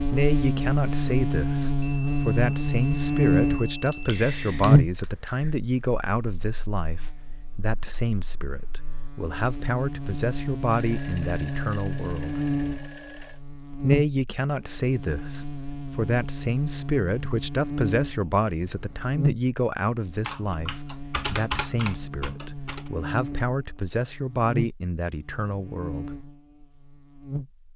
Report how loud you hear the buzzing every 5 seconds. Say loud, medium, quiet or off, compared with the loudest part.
loud, quiet, medium, medium, quiet, quiet.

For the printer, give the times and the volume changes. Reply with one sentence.
You can't hear the printer here.